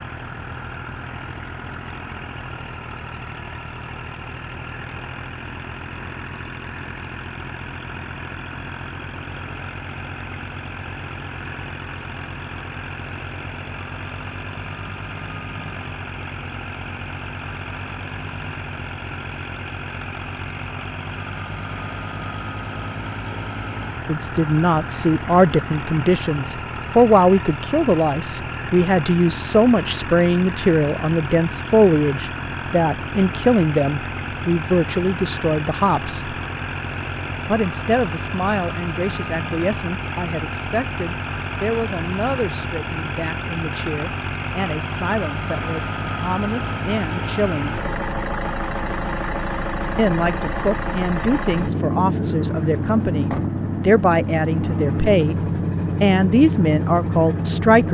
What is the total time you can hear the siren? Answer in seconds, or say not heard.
not heard.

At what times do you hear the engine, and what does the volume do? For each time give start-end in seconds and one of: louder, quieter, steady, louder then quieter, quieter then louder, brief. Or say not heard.
0.0-57.8 louder.